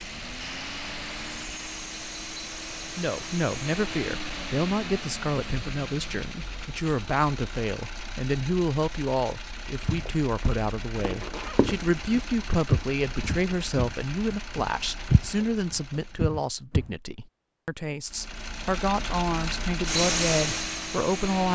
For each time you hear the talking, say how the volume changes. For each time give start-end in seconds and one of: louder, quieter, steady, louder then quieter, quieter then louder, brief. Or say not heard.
3.0-21.5 steady.